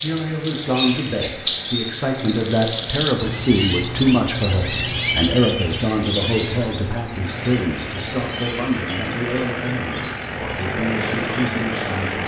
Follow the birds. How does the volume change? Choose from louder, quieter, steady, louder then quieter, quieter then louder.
quieter.